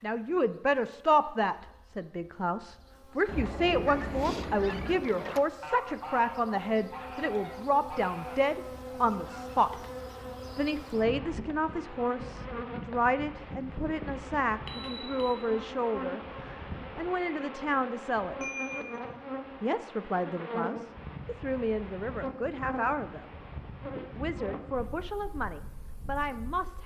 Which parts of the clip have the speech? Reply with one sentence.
You can hear the speech from 0.0 to 9.8 s, from 10.6 to 18.5 s, from 19.6 to 23.2 s and from 24.1 to 26.8 s.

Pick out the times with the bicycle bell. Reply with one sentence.
You can hear the bicycle bell from 3.2 to 5.0 s, from 14.7 to 15.4 s and from 18.4 to 19.0 s.